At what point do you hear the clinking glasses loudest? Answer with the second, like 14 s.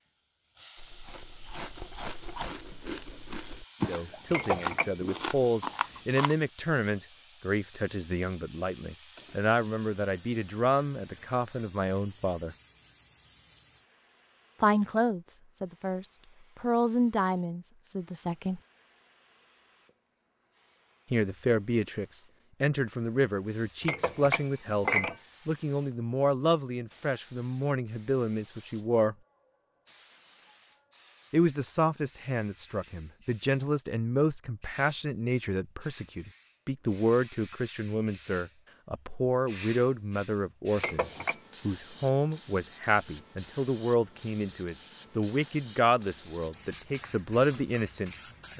25 s.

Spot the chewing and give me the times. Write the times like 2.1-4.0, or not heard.
0.8-6.3.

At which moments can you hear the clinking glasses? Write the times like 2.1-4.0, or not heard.
4.2-5.0, 23.8-25.1, 40.8-41.4.